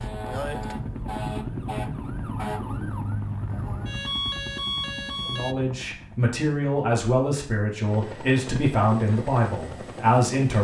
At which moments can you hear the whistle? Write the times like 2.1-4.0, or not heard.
not heard.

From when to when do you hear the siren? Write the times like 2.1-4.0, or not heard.
0.0-5.5.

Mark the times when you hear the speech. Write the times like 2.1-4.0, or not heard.
5.2-10.5.